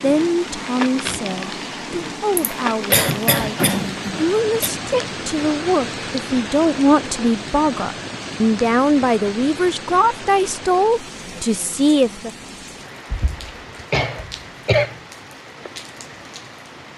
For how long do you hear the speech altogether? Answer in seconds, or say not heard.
12 s.